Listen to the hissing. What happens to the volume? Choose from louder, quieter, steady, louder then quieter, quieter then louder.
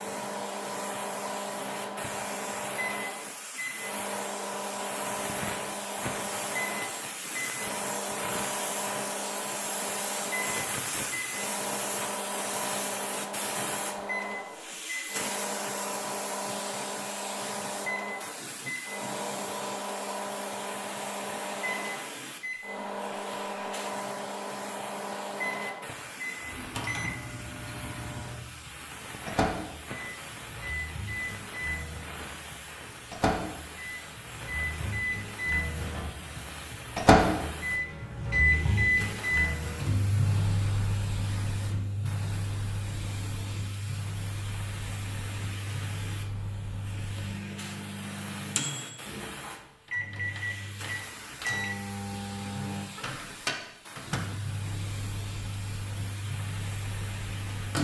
quieter.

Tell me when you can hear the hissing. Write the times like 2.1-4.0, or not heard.
0.0-57.8.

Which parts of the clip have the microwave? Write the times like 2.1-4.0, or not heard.
0.0-57.8.